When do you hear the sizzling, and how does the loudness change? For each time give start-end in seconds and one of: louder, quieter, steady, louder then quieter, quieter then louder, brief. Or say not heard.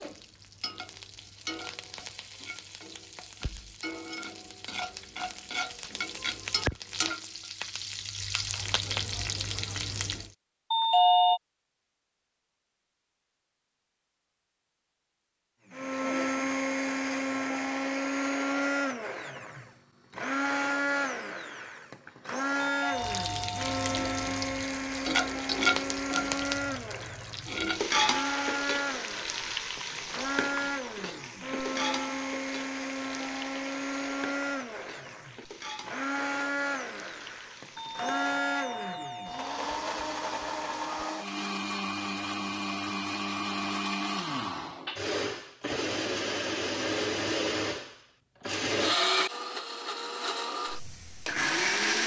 0.0-10.3 louder
22.9-38.3 quieter.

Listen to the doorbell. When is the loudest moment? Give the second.
11 s.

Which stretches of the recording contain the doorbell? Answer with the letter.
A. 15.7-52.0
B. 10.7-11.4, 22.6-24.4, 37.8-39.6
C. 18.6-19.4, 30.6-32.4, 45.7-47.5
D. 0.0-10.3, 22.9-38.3
B.